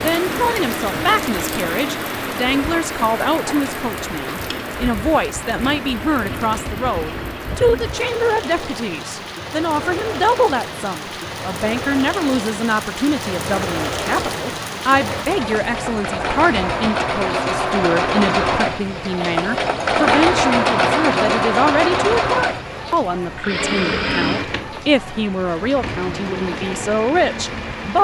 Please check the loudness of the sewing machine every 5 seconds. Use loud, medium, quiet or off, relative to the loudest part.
quiet, quiet, medium, loud, loud, medium.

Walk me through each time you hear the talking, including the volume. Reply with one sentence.
The talking can be heard from 0.0 to 27.9 s, at a steady volume.